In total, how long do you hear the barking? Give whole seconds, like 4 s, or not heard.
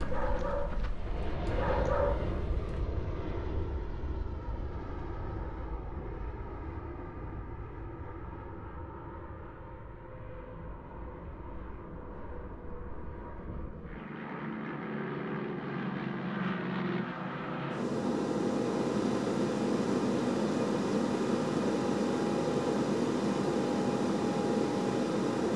3 s.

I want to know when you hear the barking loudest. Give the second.
2 s.